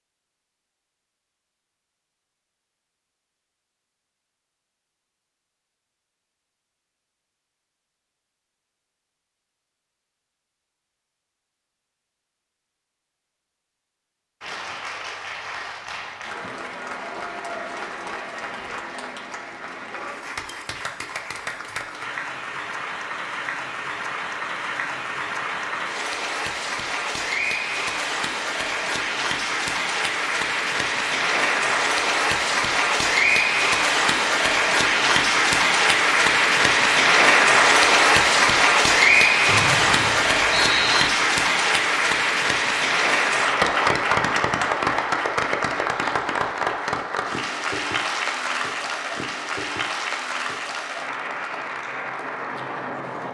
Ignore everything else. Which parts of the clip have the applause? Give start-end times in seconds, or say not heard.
14.4-53.2.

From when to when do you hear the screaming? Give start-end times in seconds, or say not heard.
not heard.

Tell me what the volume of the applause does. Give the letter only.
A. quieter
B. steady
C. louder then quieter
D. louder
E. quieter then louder
C.